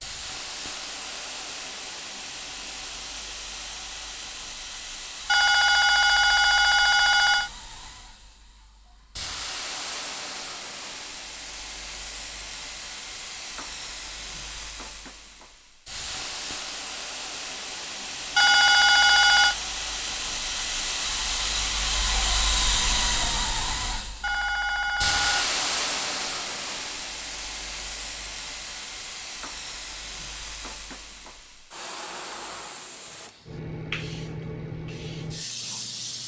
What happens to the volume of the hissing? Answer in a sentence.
The loudness of the hissing goes up, then down.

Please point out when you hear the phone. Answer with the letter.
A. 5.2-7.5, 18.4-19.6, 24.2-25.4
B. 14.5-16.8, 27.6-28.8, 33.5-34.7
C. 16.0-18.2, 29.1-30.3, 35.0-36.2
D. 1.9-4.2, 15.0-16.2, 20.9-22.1
A.